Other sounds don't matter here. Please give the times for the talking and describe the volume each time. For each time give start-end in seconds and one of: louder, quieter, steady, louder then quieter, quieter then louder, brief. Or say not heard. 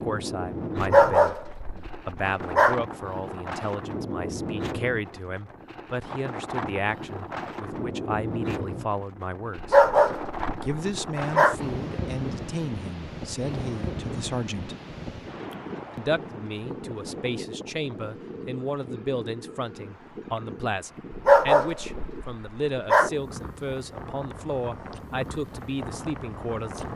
0.0-9.8 steady
10.6-14.8 steady
15.9-26.9 steady.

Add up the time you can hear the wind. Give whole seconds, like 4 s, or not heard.
27 s.